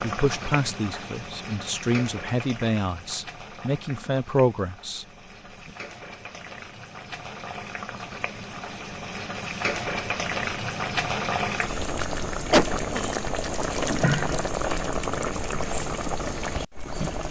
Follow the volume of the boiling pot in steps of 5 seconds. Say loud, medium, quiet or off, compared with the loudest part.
medium, medium, loud, loud.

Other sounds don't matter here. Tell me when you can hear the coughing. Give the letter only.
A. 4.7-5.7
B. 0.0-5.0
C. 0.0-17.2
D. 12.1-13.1
D.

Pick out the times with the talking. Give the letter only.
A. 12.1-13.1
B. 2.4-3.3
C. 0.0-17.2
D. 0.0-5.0
D.